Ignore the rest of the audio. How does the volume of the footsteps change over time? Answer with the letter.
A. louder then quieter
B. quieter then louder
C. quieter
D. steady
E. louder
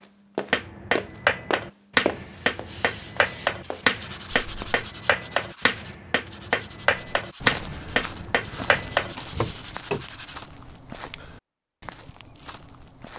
C.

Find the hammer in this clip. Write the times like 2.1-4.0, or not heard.
0.5-10.1.